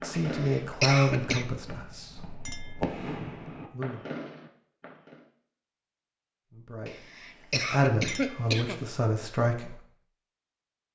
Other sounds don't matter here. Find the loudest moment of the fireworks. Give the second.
3 s.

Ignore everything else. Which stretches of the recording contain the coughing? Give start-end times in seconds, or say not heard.
0.1-1.4, 6.8-8.8.